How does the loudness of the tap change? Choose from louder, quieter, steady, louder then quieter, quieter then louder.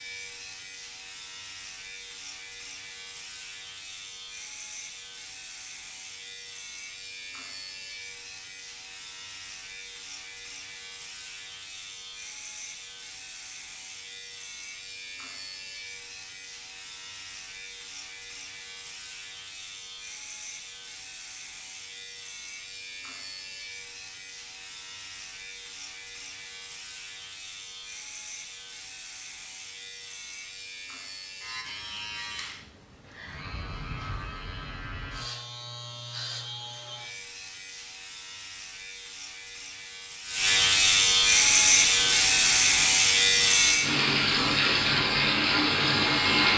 louder.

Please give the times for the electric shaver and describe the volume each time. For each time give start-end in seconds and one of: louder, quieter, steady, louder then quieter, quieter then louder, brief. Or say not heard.
0.0-46.5 louder.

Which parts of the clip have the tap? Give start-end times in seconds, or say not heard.
41.5-46.5.